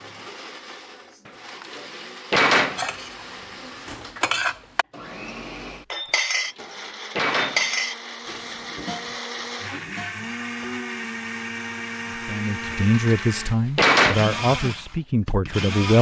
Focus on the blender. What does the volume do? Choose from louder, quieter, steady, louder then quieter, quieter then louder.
louder.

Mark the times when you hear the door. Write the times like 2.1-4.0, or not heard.
1.2-2.9, 6.3-7.7, 12.7-14.2.